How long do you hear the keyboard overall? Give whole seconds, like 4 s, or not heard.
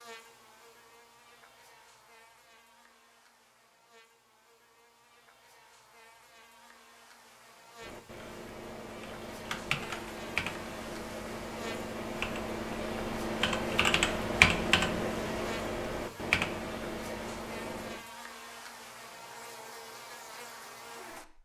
10 s.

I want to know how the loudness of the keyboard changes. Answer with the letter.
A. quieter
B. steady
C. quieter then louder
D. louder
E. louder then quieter
E.